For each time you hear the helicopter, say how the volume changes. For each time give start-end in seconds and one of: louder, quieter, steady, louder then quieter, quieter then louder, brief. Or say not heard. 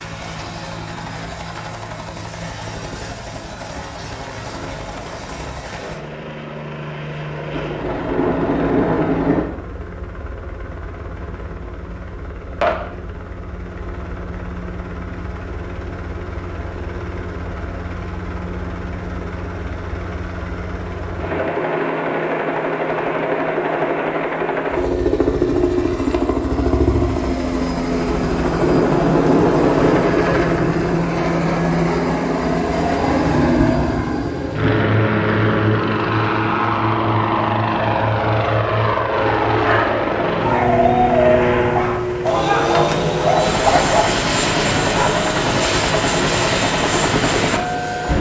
0.0-48.1 louder.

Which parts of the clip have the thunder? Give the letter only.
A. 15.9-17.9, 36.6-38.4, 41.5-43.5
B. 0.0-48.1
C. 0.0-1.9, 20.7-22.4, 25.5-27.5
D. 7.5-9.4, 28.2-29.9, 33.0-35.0
D.